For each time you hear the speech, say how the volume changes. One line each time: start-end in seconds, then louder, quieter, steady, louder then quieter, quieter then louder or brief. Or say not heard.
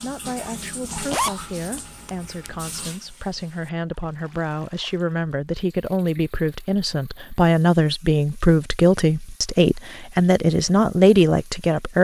0.0-11.9 louder.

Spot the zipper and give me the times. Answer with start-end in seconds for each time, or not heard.
0.9-2.8.